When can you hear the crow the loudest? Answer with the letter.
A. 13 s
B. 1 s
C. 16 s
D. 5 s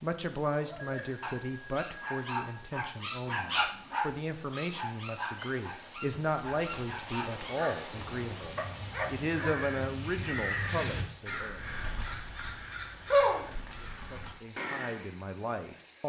A.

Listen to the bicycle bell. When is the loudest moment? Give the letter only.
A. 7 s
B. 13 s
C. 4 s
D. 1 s
D.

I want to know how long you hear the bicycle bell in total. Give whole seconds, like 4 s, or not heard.
2 s.